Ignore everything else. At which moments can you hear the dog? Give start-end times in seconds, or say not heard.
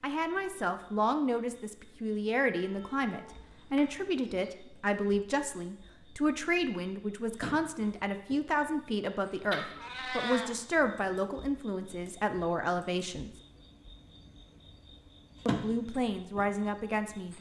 not heard.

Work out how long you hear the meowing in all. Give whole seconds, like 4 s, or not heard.
3 s.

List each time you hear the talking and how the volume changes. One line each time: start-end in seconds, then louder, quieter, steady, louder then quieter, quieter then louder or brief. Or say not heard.
0.0-13.3 steady
15.4-17.3 brief.